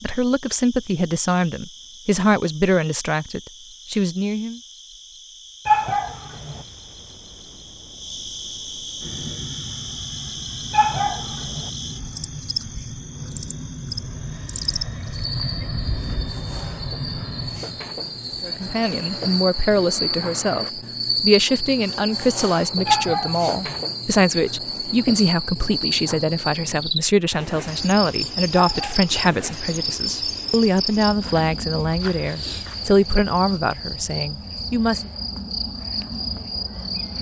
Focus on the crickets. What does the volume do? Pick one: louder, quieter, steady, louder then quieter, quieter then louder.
louder.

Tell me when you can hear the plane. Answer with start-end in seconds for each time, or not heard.
9.0-20.7.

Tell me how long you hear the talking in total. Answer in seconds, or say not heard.
21 s.